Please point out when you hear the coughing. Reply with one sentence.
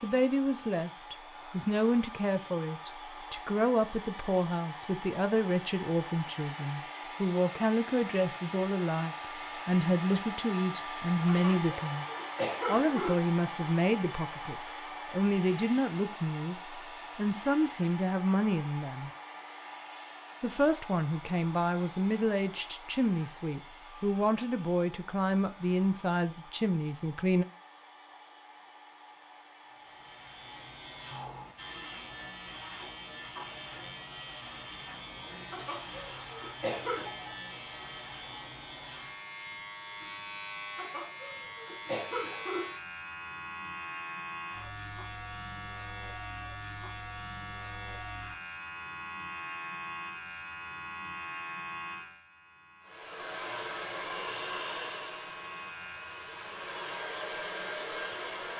You can hear the coughing from 11.2 to 13.2 s, from 35.5 to 37.0 s and from 40.8 to 42.8 s.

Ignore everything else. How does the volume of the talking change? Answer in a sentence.
The loudness of the talking stays about the same.